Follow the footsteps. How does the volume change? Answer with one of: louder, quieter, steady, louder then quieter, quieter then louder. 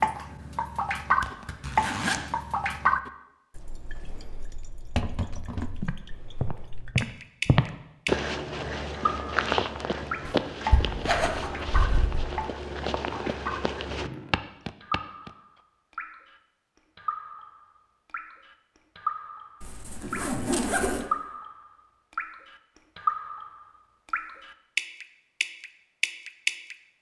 quieter.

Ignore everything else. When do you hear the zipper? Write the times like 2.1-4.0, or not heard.
1.2-2.2, 10.2-12.2, 19.6-21.1.